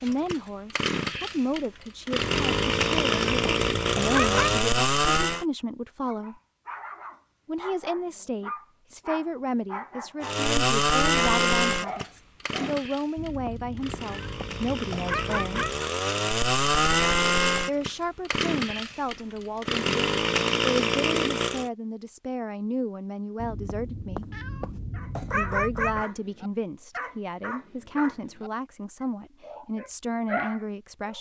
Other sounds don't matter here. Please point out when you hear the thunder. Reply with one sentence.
You can't hear the thunder here.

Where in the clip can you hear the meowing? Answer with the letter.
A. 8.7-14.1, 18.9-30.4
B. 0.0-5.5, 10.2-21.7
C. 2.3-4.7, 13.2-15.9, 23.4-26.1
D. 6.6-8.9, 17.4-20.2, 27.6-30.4
C.